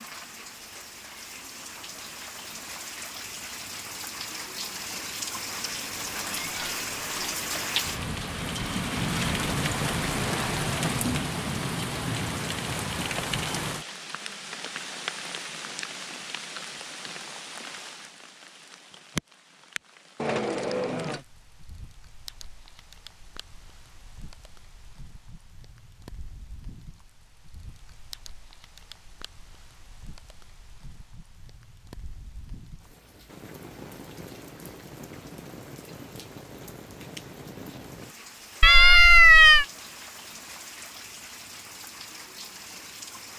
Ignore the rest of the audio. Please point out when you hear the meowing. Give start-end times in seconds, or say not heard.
5.6-7.3, 20.1-21.2, 38.6-39.6.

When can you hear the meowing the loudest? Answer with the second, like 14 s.
39 s.